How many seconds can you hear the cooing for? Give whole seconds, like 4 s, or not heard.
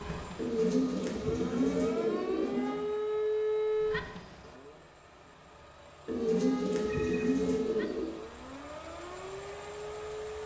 5 s.